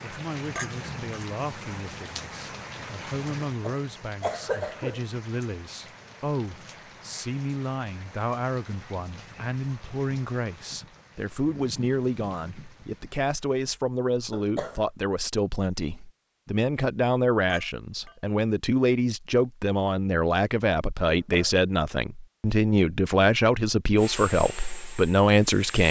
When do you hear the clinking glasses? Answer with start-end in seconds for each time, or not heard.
0.6-1.2, 17.4-18.1.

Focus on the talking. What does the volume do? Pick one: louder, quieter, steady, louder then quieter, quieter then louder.
louder.